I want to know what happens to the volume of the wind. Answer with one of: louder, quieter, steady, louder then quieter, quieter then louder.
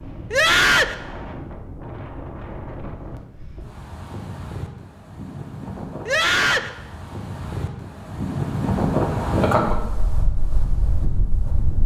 louder.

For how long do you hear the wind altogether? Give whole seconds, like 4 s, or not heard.
12 s.